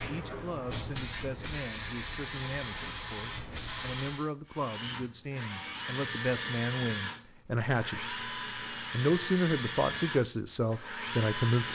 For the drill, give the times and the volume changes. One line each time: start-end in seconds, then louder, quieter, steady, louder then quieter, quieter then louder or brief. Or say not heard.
4.5-11.7 steady.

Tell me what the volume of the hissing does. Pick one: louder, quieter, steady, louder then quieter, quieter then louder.
steady.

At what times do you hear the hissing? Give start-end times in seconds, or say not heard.
0.0-4.3.